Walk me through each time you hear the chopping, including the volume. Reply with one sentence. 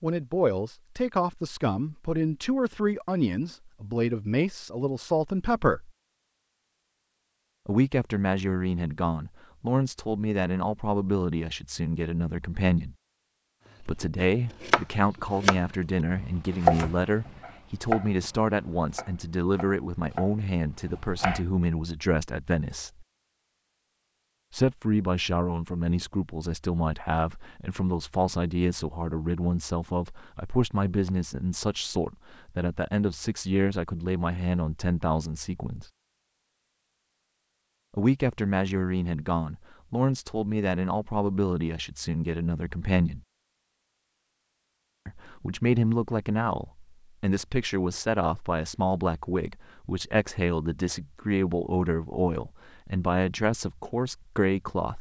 You can hear the chopping from 14.0 to 21.4 s, getting quieter then louder.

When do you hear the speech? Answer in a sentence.
You can hear the speech from 0.0 to 5.9 s, from 7.7 to 12.9 s, from 13.8 to 23.1 s, from 24.5 to 35.9 s, from 38.0 to 43.2 s and from 45.0 to 54.9 s.